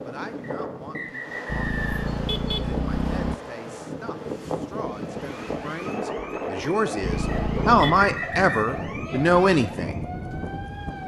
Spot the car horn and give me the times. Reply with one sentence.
You can hear the car horn from 1.4 to 3.4 s and from 7.0 to 8.1 s.